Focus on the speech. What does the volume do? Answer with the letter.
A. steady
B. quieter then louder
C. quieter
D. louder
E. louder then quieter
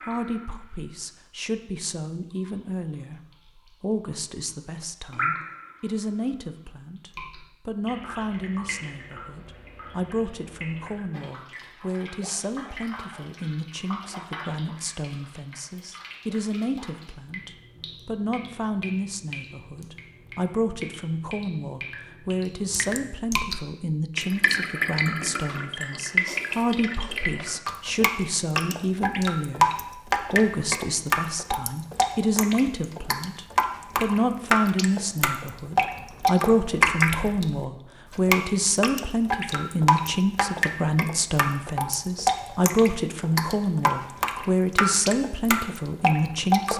D.